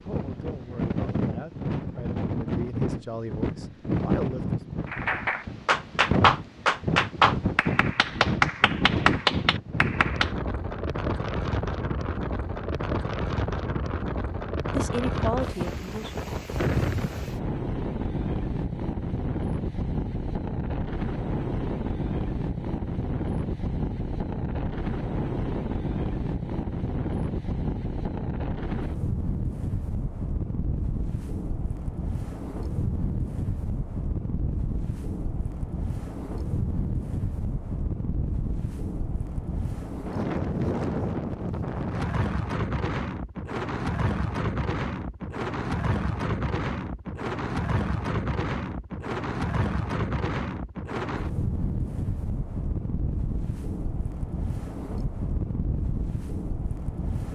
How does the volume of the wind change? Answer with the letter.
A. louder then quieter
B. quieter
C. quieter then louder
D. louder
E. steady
E.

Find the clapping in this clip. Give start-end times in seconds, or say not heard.
4.8-10.3.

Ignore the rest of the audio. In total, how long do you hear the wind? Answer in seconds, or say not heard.
57 s.